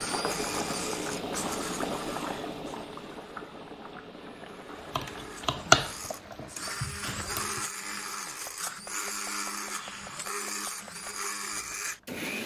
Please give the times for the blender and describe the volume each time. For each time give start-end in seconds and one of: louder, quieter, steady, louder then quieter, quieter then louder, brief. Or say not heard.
0.0-12.4 quieter then louder.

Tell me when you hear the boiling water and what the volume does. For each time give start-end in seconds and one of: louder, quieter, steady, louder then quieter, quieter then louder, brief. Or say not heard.
0.0-6.8 quieter.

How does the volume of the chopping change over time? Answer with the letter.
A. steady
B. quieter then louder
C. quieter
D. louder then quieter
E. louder
C.